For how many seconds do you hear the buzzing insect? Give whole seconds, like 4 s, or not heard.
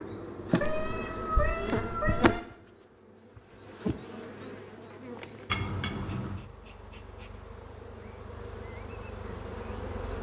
10 s.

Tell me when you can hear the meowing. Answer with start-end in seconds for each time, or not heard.
0.6-2.4, 5.5-6.5.